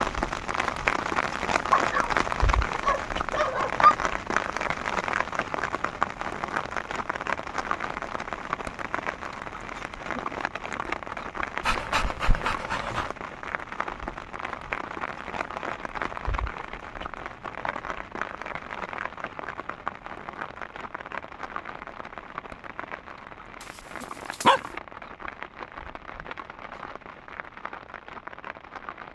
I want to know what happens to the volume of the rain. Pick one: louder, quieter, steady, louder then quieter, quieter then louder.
quieter.